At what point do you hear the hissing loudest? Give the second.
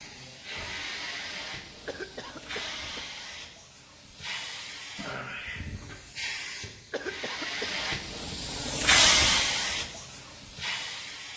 9 s.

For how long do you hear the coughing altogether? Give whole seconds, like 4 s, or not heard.
2 s.